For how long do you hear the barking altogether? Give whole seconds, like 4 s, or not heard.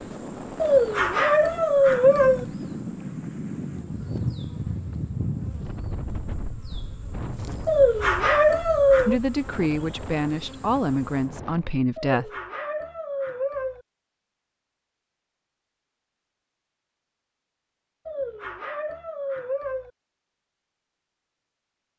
7 s.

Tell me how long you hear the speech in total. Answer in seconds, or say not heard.
3 s.